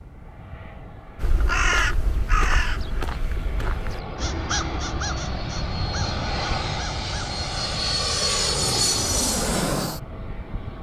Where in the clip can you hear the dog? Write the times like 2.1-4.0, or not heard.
not heard.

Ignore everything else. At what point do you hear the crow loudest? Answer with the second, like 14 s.
2 s.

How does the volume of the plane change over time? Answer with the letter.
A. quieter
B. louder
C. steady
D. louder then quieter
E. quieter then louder
B.